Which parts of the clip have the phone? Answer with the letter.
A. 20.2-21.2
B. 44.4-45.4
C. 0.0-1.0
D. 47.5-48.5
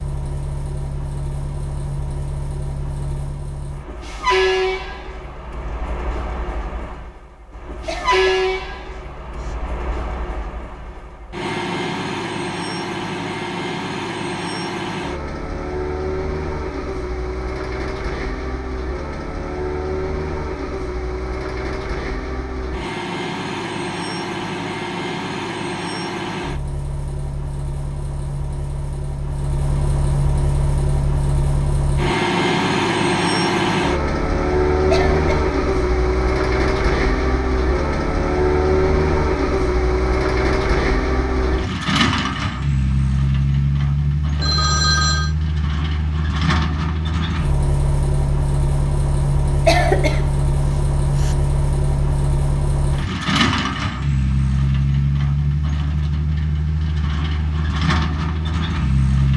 B.